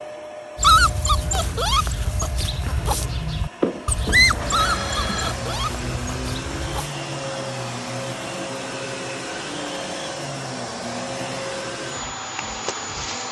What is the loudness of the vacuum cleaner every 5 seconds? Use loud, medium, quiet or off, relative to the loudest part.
medium, loud, loud.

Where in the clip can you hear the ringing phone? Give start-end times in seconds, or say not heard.
3.6-5.3.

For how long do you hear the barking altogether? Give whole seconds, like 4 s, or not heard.
6 s.